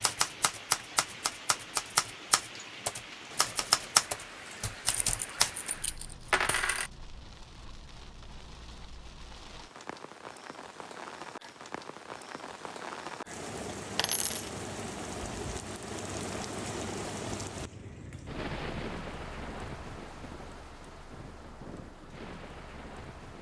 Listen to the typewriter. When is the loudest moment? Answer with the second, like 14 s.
4 s.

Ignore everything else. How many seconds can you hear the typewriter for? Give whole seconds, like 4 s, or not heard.
6 s.